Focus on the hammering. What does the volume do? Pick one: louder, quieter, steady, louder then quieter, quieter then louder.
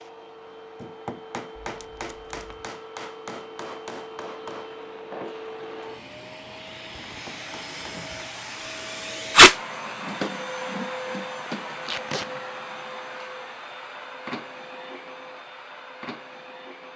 quieter.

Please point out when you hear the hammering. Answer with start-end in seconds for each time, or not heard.
0.8-8.2.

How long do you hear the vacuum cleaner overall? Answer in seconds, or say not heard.
17 s.